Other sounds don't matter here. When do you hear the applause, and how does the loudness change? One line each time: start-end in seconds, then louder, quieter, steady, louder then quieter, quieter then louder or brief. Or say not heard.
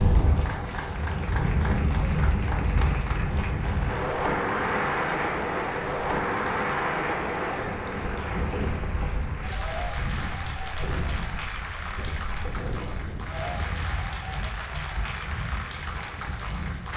0.0-16.9 steady.